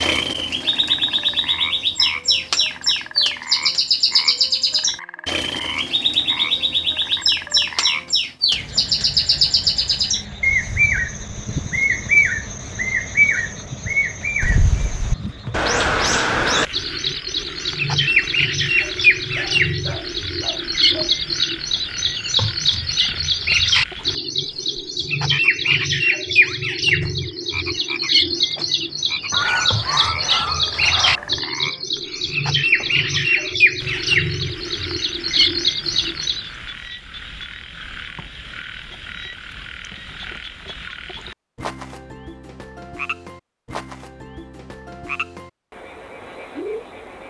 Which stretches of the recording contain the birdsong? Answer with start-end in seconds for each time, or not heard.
0.0-36.5.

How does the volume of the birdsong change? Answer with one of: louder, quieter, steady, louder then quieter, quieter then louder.
steady.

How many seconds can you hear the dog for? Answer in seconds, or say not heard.
4 s.